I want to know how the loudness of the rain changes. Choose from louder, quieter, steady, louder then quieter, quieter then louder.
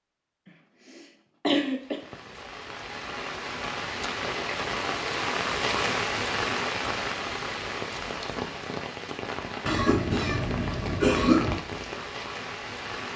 louder then quieter.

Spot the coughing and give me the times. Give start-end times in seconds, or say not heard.
0.5-2.0, 9.7-11.6.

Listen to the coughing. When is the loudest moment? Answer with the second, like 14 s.
11 s.